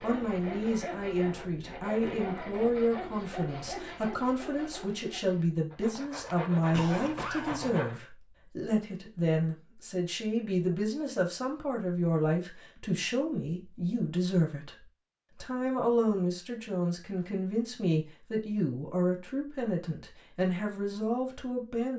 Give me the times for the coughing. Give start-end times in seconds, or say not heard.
6.7-7.8.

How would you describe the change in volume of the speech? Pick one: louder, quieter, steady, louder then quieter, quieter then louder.
steady.